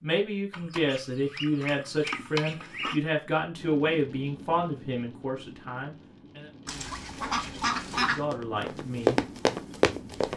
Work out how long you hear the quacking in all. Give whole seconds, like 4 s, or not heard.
4 s.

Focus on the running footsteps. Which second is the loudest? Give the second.
9 s.